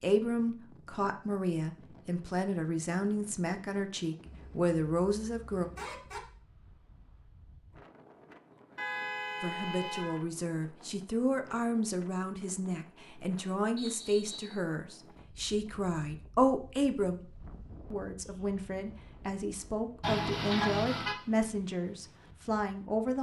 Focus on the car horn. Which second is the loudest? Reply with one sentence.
The loudest moment of the car horn is at 21 seconds.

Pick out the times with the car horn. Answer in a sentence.
The car horn can be heard from 4.2 to 6.2 s, from 8.8 to 10.2 s and from 20.0 to 21.1 s.